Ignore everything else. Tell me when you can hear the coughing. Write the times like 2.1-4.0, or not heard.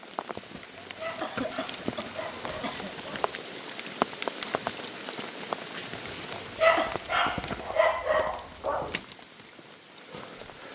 0.8-3.0, 6.5-7.0.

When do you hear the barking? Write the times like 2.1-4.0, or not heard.
0.9-3.3, 6.5-9.0.